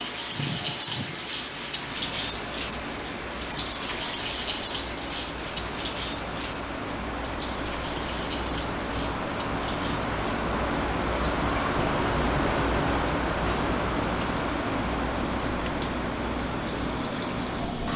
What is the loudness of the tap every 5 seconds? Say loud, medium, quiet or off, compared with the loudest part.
loud, medium, medium, loud.